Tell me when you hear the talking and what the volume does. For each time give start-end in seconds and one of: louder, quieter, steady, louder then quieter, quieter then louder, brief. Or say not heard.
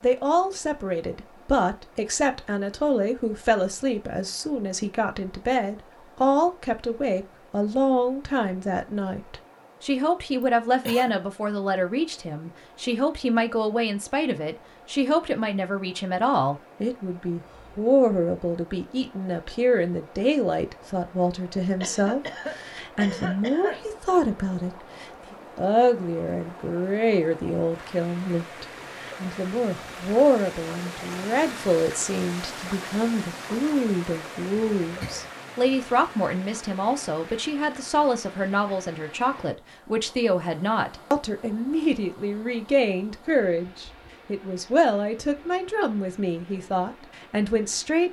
0.0-48.0 steady.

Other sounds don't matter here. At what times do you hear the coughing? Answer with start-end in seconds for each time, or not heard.
10.4-11.2, 21.8-23.9, 34.8-35.3.